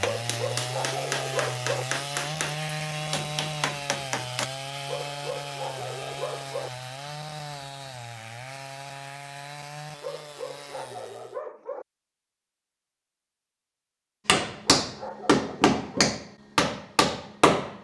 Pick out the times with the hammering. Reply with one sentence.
You can hear the hammering from 0.0 to 4.5 s and from 14.2 to 17.8 s.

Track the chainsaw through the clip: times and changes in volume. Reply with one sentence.
The chainsaw can be heard from 0.0 to 11.4 s, getting quieter.